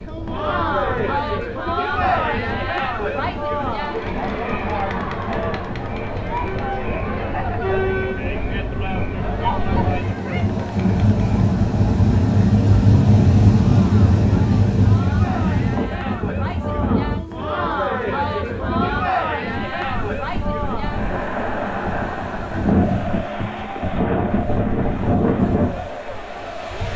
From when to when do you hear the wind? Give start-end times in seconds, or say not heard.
0.0-26.9.